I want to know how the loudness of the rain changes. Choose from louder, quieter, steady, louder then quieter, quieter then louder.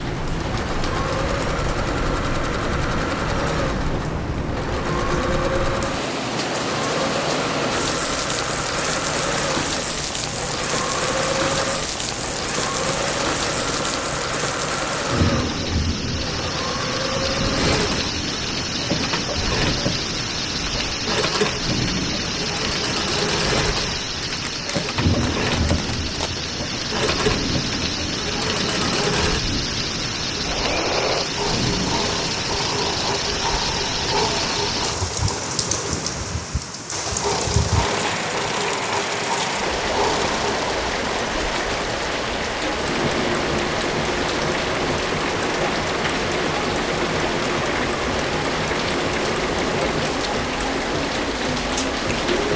steady.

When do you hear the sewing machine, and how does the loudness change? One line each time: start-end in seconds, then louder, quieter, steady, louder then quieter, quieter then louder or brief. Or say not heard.
0.0-52.5 steady.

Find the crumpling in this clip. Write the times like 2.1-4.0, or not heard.
24.2-26.4.